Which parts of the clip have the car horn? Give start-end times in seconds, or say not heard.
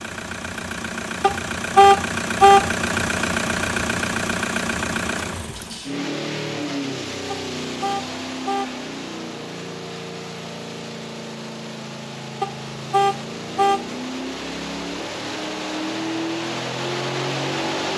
1.2-2.6, 7.3-8.7, 12.4-13.8.